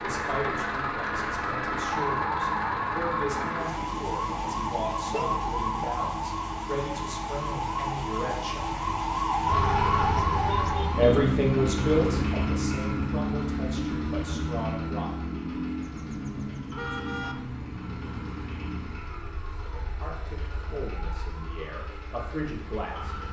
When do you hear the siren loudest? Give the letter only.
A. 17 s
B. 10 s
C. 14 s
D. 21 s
B.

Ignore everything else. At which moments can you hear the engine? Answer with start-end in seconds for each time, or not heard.
0.0-23.2.